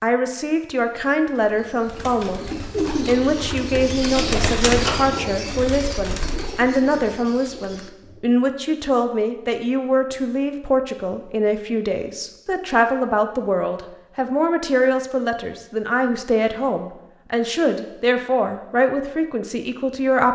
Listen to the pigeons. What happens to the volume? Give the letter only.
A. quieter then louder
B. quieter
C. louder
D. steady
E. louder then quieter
E.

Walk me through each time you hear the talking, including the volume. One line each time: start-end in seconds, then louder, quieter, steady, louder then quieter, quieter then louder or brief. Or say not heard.
0.0-2.5 brief
3.0-20.3 steady.